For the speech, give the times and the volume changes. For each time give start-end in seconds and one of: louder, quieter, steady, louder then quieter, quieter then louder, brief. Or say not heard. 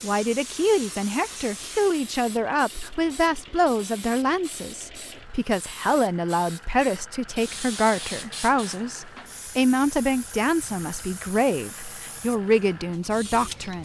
0.0-13.8 steady.